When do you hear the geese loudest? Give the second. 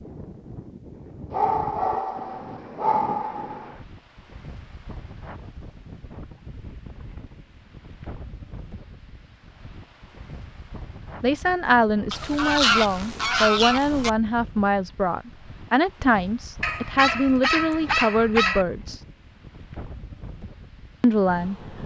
13 s.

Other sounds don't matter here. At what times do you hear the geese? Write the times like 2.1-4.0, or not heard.
12.1-14.1.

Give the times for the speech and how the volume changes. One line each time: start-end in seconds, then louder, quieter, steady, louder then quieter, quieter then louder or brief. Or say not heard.
11.2-19.0 steady
21.0-21.6 brief.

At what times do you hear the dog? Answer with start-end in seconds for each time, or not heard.
1.3-3.8, 16.6-18.6.